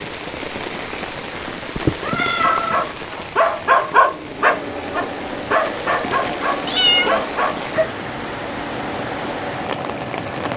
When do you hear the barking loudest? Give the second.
4 s.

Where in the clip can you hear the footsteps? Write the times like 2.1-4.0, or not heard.
not heard.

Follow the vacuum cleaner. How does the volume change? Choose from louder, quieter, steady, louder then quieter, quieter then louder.
steady.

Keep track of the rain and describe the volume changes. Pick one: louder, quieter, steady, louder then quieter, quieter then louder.
steady.